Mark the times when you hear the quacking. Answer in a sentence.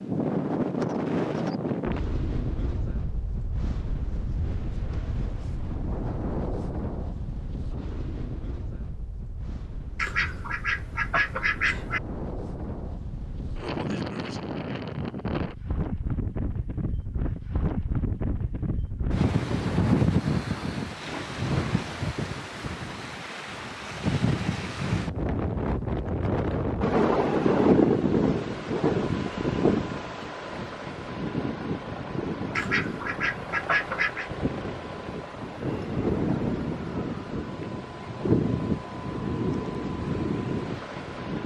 You can hear the quacking from 9.9 to 12.0 s and from 32.5 to 34.3 s.